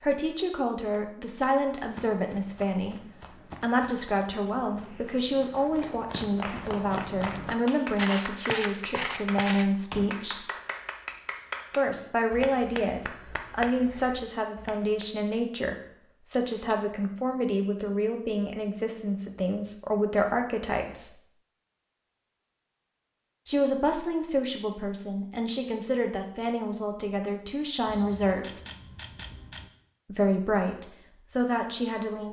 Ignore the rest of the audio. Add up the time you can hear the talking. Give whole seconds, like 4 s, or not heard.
27 s.